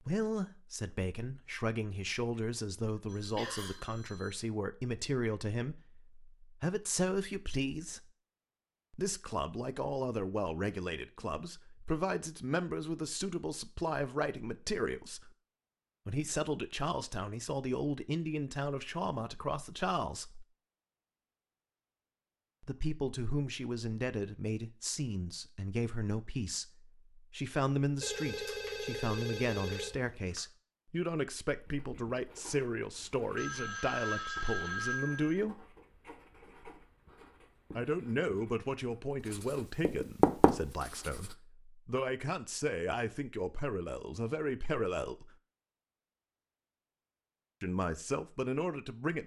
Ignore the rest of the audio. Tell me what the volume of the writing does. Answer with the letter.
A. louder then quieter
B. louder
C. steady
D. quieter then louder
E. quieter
B.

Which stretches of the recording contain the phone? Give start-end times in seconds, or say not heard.
3.0-4.5, 28.0-30.4, 33.4-35.4.